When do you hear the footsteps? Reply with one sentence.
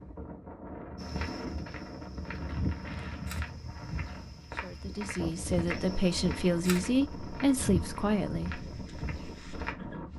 You can hear the footsteps from 0.9 to 9.8 s.